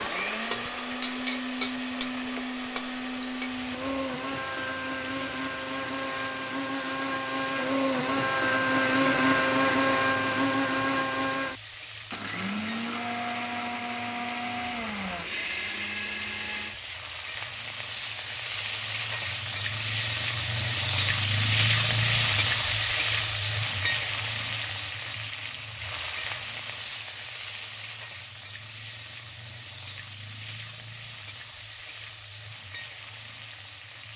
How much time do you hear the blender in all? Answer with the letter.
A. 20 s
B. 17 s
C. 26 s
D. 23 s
B.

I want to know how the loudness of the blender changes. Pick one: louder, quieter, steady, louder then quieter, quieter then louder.
louder then quieter.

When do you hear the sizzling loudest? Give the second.
22 s.